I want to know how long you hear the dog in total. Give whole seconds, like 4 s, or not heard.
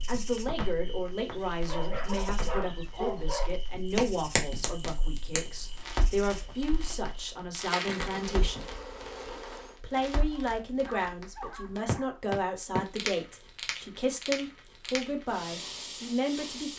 4 s.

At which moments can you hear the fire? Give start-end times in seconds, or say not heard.
0.0-16.7.